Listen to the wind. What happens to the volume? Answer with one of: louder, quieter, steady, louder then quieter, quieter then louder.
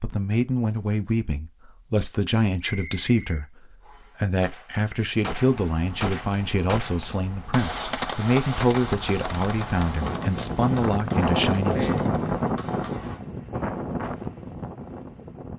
louder then quieter.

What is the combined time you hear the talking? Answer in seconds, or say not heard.
12 s.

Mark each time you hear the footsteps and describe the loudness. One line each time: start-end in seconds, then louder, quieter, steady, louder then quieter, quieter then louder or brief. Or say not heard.
not heard.